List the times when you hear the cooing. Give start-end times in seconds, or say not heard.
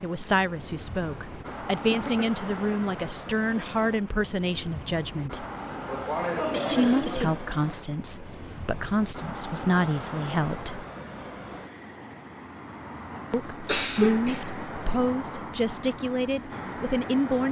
not heard.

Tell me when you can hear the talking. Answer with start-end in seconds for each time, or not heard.
0.0-5.5, 6.7-10.8, 13.3-17.4.